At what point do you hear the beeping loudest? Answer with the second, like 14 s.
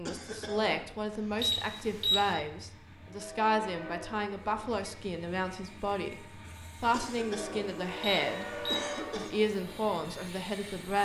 2 s.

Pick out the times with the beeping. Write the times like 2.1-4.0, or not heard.
1.4-2.3, 8.0-8.8.